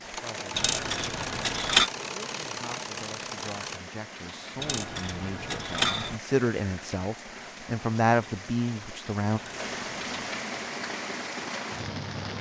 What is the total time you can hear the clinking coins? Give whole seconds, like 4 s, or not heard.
4 s.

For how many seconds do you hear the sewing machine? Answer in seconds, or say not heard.
4 s.